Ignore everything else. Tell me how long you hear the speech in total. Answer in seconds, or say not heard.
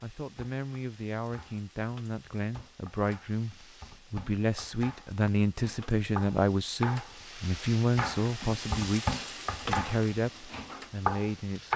12 s.